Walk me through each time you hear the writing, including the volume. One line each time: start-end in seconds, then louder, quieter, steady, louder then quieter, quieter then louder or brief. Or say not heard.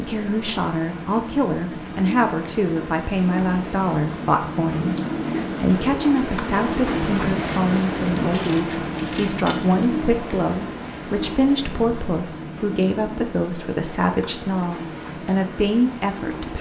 not heard.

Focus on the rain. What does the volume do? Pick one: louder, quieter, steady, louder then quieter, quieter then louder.
louder then quieter.